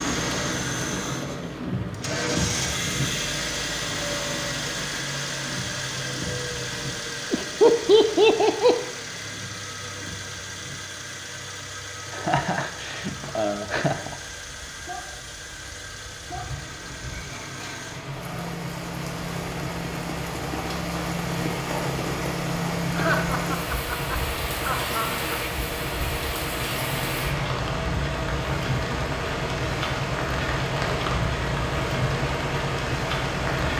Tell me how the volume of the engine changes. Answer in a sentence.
The loudness of the engine goes down, then up.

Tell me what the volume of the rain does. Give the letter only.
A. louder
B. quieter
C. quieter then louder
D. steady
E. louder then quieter
C.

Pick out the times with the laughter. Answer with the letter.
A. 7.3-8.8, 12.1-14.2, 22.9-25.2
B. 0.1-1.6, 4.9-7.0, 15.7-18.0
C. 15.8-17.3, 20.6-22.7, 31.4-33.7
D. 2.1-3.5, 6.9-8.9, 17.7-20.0
A.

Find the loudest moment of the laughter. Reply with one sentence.
The loudest moment of the laughter is at 8 seconds.